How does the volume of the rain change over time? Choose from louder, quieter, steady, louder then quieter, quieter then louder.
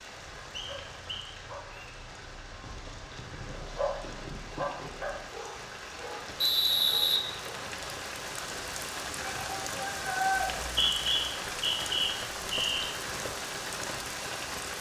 louder.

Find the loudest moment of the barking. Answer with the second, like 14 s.
4 s.